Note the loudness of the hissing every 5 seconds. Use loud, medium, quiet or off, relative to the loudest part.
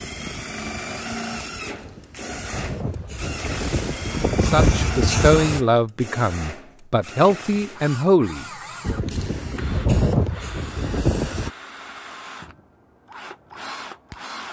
medium, loud, loud.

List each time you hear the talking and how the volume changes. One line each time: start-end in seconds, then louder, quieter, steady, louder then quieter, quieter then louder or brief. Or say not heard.
4.4-8.9 quieter then louder.